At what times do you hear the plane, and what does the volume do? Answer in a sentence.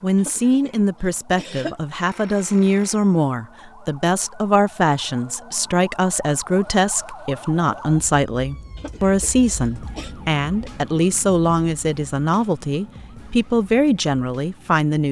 The plane can't be heard in this clip.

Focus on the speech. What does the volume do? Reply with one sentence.
The loudness of the speech stays about the same.